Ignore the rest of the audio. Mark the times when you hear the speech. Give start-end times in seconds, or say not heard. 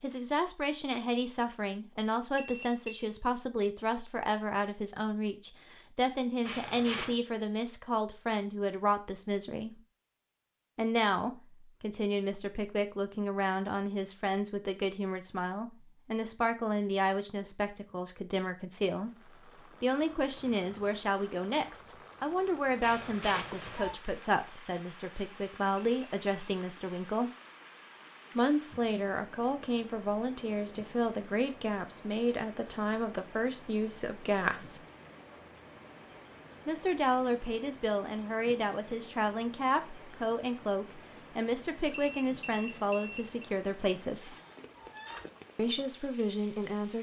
0.0-9.8, 10.8-27.3, 28.4-34.8, 36.6-44.4, 45.5-46.9.